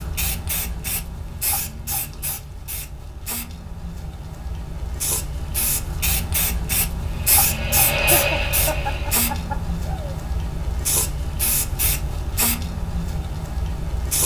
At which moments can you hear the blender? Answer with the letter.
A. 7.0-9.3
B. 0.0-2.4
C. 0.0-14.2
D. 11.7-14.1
A.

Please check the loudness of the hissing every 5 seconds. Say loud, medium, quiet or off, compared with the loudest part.
medium, loud, loud.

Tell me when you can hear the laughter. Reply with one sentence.
The laughter can be heard from 8.1 to 10.2 s.